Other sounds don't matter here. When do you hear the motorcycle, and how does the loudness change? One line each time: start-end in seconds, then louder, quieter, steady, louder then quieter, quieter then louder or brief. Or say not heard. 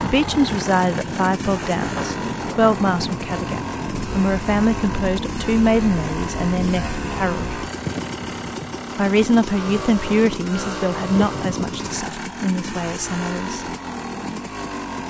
0.0-15.0 steady.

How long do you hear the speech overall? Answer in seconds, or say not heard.
12 s.